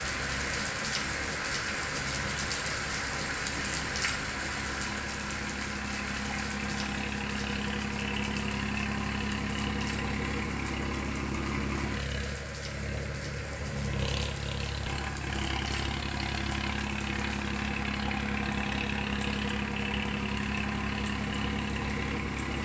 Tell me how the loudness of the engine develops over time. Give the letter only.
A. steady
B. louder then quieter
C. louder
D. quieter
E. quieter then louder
C.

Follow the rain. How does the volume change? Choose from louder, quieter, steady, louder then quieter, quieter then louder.
quieter.